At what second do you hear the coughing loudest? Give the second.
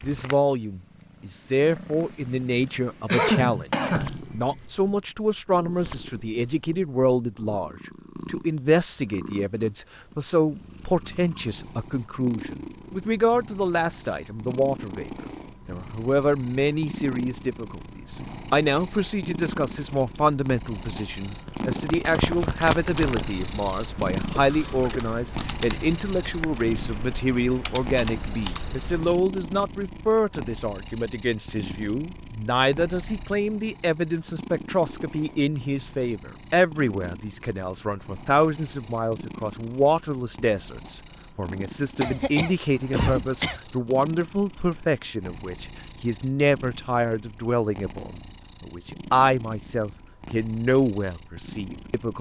3 s.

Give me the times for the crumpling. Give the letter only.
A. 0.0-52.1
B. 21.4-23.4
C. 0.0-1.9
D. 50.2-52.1
B.